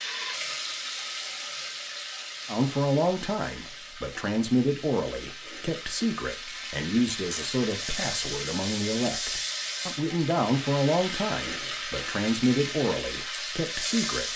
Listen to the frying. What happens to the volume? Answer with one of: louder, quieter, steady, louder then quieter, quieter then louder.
quieter then louder.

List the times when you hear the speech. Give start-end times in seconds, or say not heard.
2.5-14.3.